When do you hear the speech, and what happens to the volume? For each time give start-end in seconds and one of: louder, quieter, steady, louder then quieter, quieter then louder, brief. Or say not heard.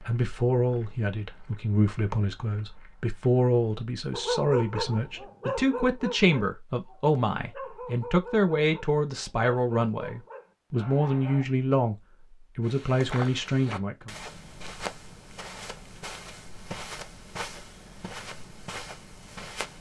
0.1-11.9 steady
12.6-14.1 brief.